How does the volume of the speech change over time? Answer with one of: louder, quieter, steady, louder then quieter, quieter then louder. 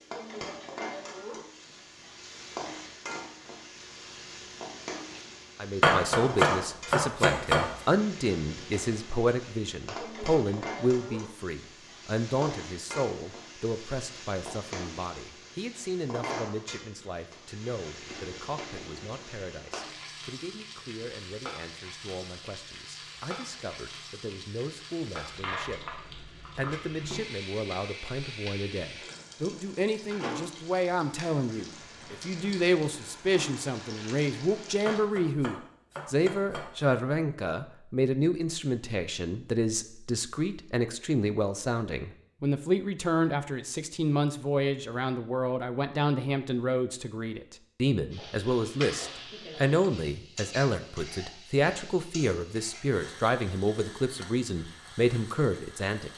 quieter then louder.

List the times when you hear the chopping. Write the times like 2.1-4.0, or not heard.
5.8-7.7, 34.9-36.9.